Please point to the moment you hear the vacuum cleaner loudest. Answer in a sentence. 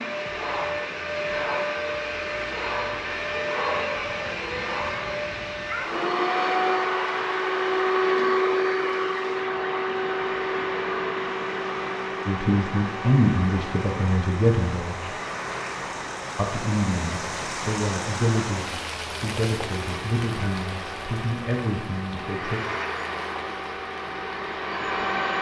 The volume of the vacuum cleaner peaks at 8 seconds.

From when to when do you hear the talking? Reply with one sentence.
You can hear the talking from 12.2 to 15.1 s and from 16.4 to 22.6 s.